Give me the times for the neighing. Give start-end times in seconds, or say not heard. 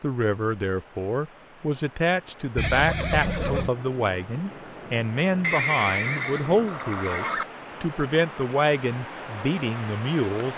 2.5-3.7, 5.4-7.5.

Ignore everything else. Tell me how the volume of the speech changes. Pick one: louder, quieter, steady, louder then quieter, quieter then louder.
steady.